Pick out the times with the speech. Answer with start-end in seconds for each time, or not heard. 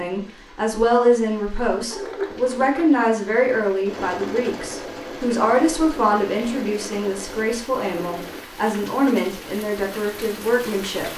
0.0-11.1.